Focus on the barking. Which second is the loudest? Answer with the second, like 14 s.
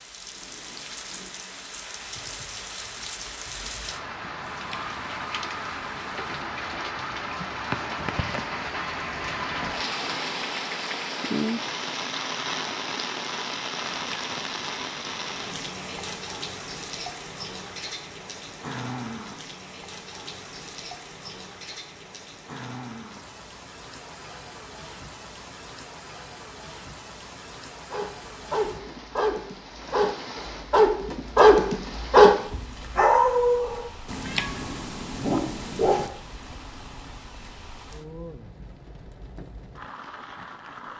32 s.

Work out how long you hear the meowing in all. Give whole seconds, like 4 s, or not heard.
6 s.